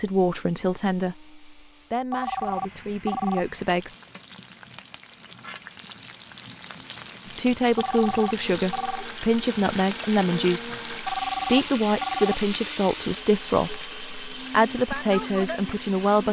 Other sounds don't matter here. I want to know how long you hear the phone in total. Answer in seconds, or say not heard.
4 s.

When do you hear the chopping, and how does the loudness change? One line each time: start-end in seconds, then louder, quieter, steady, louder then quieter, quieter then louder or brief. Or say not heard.
not heard.